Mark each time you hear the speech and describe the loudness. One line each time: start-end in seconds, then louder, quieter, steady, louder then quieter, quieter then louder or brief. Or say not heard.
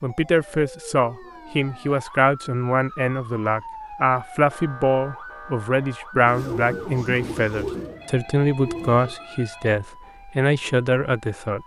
0.0-11.6 steady.